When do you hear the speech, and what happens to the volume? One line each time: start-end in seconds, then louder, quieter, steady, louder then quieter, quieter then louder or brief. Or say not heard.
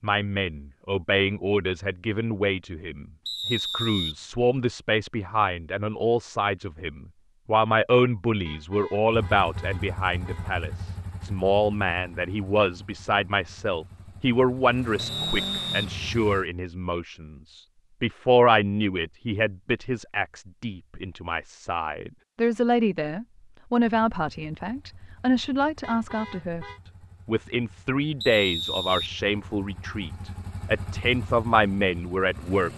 0.0-26.6 steady
27.2-32.7 quieter then louder.